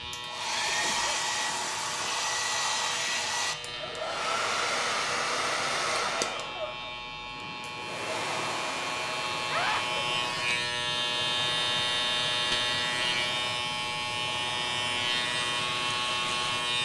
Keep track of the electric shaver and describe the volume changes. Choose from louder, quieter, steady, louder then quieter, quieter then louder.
louder.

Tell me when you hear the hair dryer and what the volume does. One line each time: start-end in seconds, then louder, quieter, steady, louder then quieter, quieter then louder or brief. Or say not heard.
0.0-16.8 quieter.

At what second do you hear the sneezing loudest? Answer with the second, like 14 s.
10 s.